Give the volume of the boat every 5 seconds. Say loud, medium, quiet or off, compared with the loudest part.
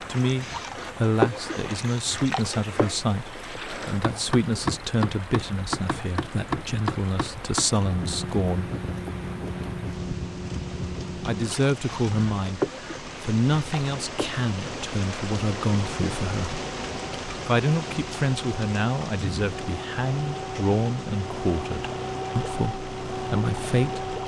loud, loud, loud, medium, loud.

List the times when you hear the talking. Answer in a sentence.
You can hear the talking from 0.0 to 8.7 s, from 11.2 to 12.6 s, from 13.2 to 16.6 s and from 17.4 to 24.1 s.